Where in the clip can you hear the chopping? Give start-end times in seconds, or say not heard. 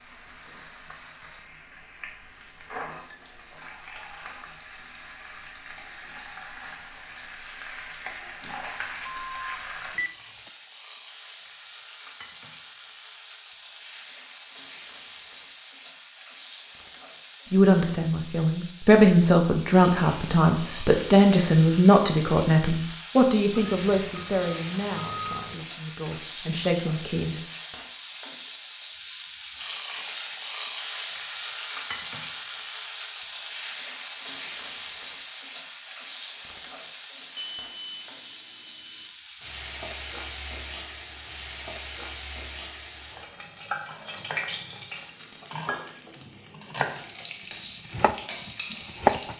43.0-47.1, 47.9-49.3.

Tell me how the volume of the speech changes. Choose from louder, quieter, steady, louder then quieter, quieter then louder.
quieter.